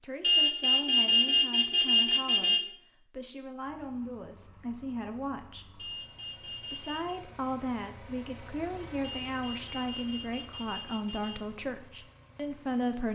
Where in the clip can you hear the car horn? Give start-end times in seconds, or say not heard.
0.2-2.6, 5.8-7.2, 9.0-11.4.